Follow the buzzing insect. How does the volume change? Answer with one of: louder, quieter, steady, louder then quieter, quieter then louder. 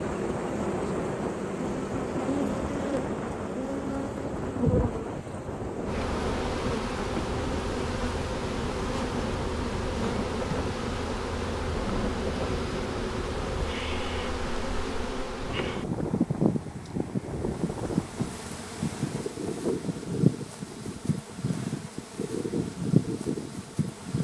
steady.